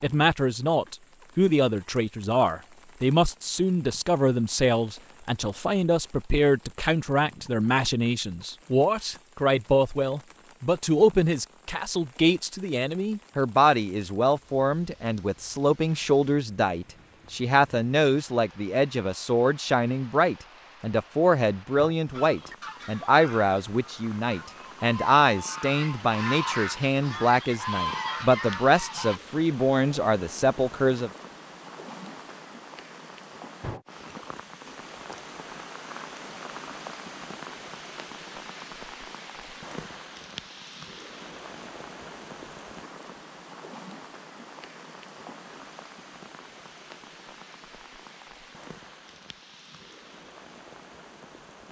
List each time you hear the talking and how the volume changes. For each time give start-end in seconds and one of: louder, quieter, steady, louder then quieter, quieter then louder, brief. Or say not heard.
0.0-31.1 steady.